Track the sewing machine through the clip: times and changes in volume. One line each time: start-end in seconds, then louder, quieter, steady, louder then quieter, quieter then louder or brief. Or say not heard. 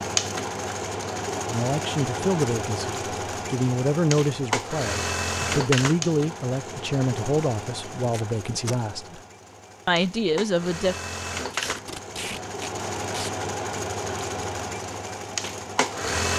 0.0-16.3 quieter then louder.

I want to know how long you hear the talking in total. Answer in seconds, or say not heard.
9 s.